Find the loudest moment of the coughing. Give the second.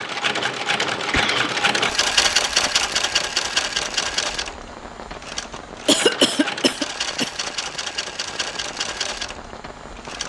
6 s.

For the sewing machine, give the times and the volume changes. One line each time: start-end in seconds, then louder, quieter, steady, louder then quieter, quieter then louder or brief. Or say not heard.
0.0-10.2 quieter.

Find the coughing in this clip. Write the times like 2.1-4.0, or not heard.
0.9-1.5, 5.8-7.3.